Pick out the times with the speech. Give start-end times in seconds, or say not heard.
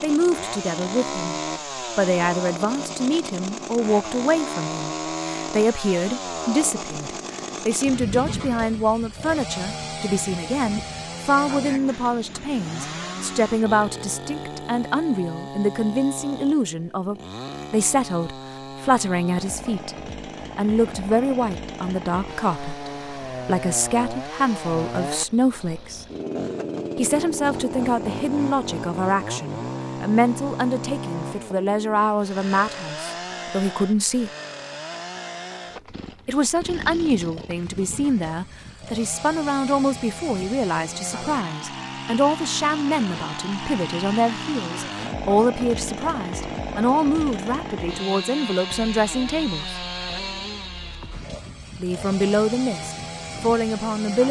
0.0-19.9, 20.6-26.1, 26.9-34.3, 36.2-49.8, 51.8-54.2.